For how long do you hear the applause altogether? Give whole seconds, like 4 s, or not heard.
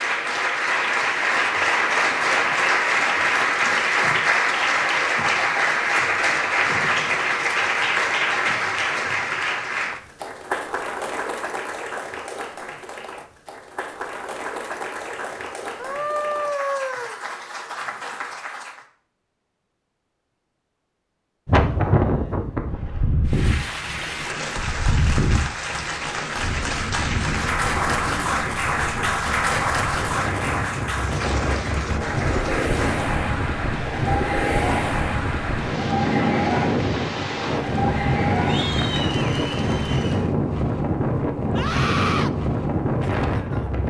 36 s.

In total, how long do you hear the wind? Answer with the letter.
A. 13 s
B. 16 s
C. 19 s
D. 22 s
D.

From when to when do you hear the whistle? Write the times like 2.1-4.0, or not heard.
not heard.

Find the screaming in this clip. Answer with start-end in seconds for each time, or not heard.
15.8-17.1, 41.5-42.3.